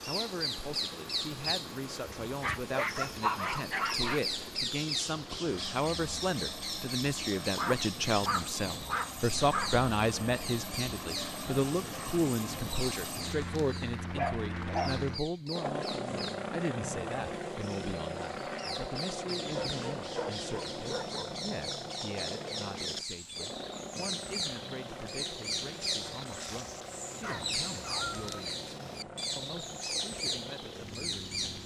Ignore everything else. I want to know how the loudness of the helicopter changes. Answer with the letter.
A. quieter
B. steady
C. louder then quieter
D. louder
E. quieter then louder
C.